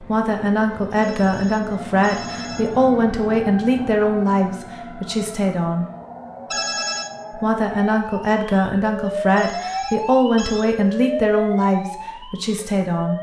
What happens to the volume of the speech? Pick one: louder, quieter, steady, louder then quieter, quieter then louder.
steady.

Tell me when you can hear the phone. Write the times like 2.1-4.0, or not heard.
1.0-2.6, 6.5-7.1, 9.3-10.7.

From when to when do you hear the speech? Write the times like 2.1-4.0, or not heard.
0.0-5.9, 7.3-13.1.